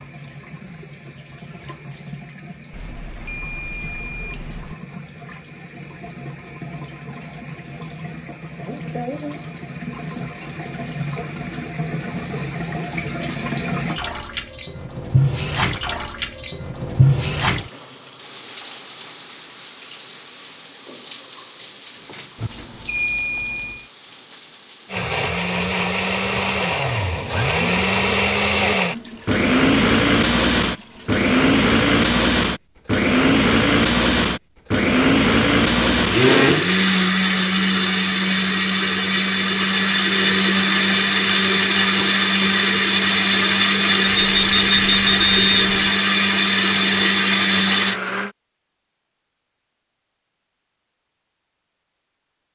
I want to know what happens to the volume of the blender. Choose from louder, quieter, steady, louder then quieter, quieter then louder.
steady.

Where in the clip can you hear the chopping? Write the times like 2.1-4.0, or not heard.
not heard.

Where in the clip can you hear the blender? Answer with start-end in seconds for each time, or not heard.
24.9-48.3.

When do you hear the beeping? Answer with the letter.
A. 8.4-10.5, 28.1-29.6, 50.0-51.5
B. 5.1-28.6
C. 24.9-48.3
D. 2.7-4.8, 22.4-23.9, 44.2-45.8
D.